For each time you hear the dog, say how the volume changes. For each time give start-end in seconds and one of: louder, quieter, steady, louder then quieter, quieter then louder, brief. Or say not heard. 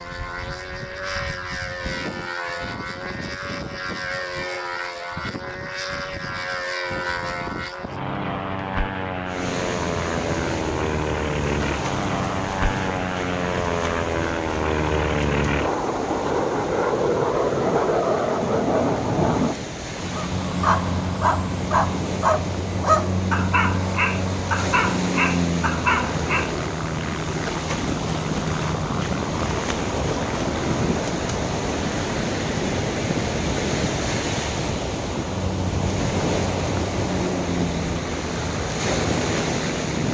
20.1-26.6 steady.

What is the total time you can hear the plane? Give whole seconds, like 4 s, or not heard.
40 s.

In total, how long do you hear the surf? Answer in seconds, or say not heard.
31 s.